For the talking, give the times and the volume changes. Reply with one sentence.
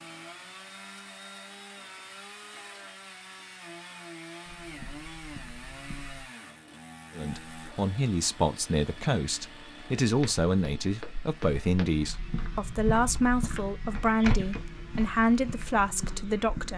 The talking can be heard from 7.2 to 16.7 s, at a steady volume.